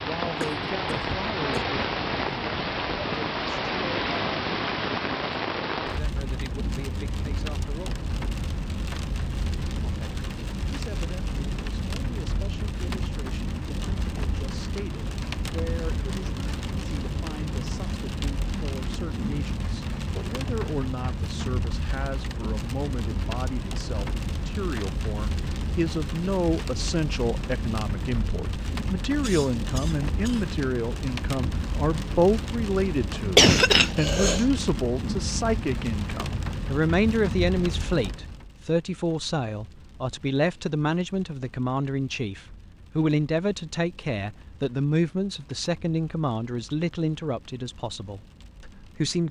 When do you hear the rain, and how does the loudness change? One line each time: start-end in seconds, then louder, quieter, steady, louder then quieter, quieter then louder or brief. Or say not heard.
0.0-49.2 quieter.